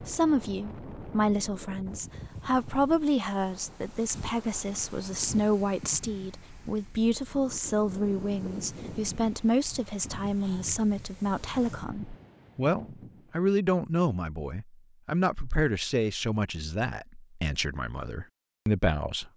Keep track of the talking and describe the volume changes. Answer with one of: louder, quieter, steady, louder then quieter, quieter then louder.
steady.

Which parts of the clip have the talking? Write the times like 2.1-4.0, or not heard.
0.0-19.3.